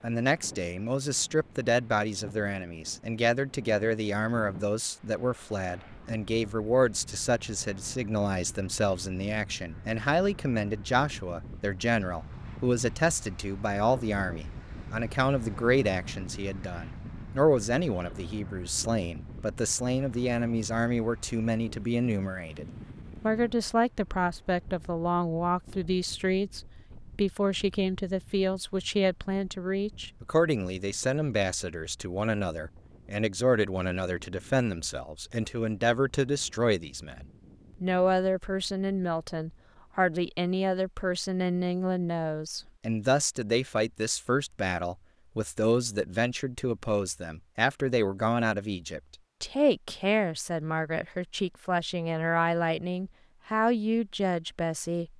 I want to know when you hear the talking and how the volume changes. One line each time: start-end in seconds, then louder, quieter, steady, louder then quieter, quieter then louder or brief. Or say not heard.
0.0-55.1 steady.